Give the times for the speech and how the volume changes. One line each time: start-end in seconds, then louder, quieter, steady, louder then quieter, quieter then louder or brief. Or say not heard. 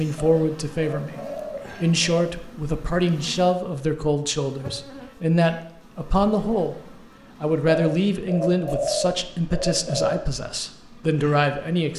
0.0-1.2 brief
1.8-11.9 steady.